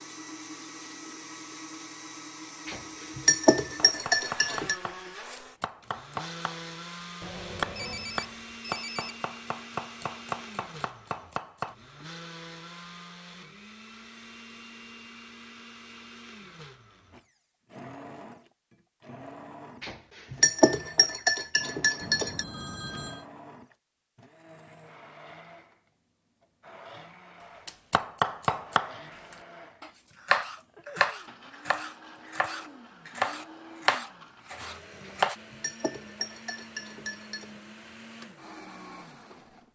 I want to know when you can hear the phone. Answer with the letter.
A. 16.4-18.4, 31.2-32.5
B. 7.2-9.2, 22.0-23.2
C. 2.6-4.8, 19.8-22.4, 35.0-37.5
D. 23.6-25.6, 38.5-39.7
B.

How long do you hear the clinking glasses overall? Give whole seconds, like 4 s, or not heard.
7 s.